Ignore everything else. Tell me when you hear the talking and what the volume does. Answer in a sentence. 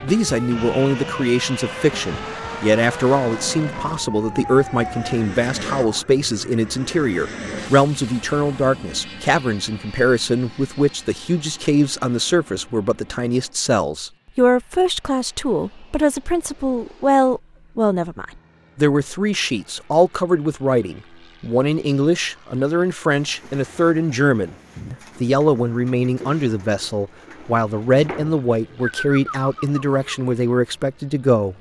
You can hear the talking from 0.0 to 31.5 s, at a steady volume.